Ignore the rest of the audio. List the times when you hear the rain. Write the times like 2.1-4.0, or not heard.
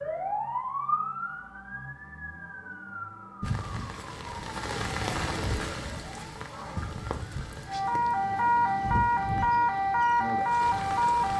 3.4-11.3.